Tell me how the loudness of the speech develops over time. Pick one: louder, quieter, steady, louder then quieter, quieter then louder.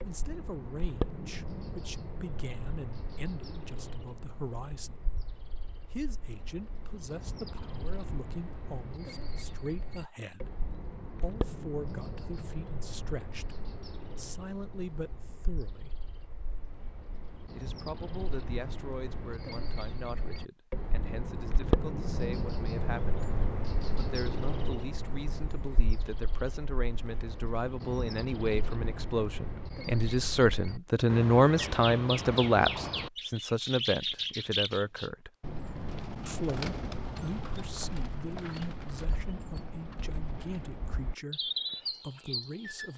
louder then quieter.